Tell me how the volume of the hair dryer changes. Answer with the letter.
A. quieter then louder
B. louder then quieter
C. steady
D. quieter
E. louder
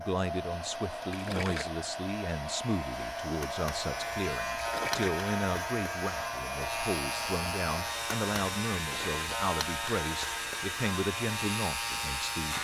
C.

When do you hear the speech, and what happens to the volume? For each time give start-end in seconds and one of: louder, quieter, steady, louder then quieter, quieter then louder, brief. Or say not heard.
0.0-12.5 steady.